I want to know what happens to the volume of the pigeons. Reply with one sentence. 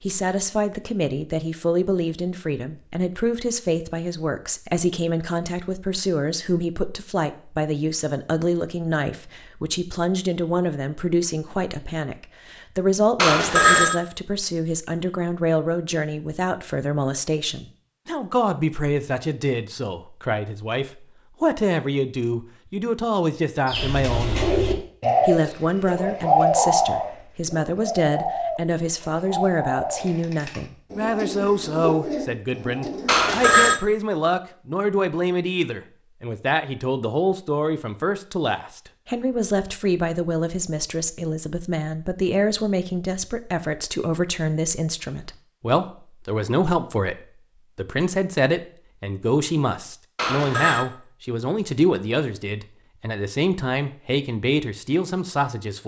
The volume of the pigeons goes down.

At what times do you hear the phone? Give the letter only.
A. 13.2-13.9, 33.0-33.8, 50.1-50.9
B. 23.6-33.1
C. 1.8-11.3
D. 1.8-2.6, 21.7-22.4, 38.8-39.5
A.